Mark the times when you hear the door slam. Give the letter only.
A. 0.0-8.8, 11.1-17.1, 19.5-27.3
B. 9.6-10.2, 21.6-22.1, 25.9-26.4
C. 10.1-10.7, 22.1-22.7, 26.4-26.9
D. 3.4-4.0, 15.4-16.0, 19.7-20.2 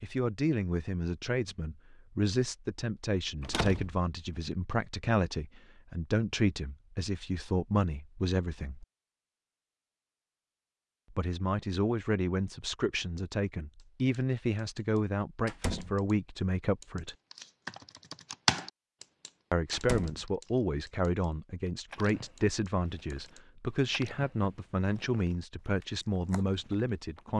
D.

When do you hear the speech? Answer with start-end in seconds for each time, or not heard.
0.0-8.8, 11.1-17.1, 19.5-27.3.